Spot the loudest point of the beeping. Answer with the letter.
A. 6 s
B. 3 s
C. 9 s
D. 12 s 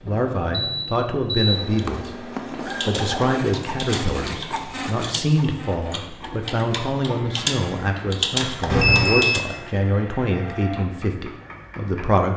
C.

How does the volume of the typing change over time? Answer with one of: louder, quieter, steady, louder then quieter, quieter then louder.
louder.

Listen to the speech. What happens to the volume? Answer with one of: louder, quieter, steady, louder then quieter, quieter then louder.
steady.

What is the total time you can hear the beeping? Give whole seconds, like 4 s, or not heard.
2 s.